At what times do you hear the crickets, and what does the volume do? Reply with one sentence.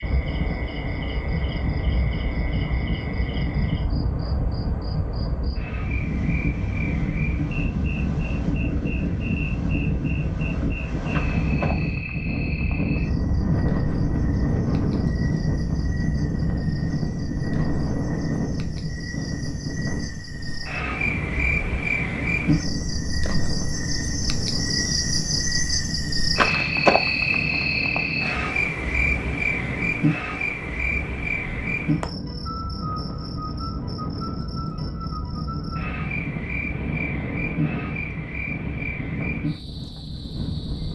You can hear the crickets from 0.0 to 40.9 s, getting louder then quieter.